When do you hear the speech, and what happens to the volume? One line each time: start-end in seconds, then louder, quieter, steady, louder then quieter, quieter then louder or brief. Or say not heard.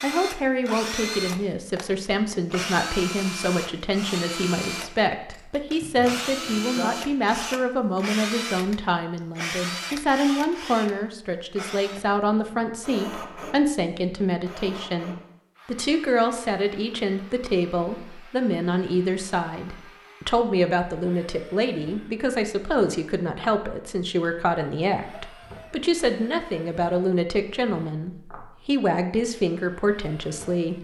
0.0-30.7 steady.